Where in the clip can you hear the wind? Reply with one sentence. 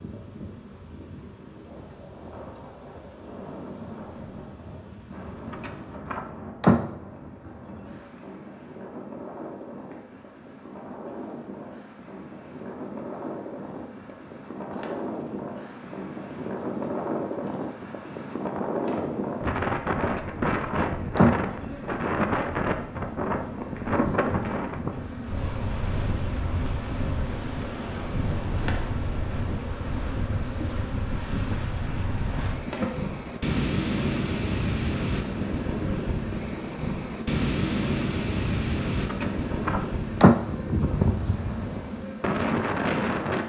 The wind can be heard from 0.0 to 43.4 s.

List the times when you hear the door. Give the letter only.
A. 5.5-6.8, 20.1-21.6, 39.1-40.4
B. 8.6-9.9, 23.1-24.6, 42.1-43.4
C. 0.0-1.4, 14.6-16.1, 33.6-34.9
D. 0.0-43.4
A.